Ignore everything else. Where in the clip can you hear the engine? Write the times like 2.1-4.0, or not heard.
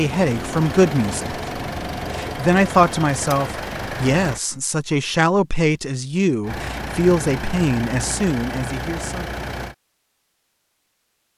0.0-4.4, 6.4-9.8.